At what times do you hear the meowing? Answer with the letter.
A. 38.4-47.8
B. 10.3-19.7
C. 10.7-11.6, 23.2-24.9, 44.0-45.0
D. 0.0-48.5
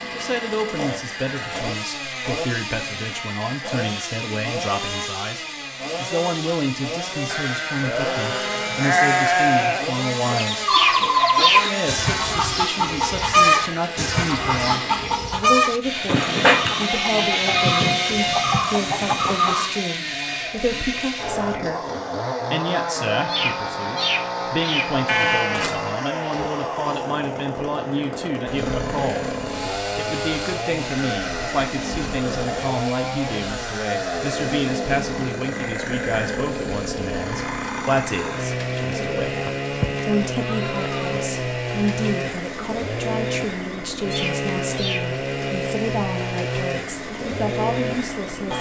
C.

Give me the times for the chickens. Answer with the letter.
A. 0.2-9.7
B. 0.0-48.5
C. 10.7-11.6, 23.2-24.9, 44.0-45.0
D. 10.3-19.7
D.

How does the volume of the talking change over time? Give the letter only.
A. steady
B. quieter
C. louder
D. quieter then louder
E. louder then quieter
A.